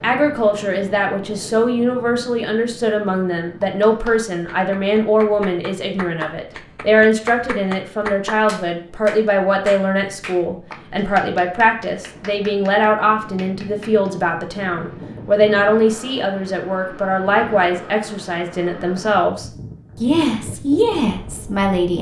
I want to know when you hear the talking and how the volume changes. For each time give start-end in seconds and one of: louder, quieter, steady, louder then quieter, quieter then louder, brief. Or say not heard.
0.0-21.9 steady.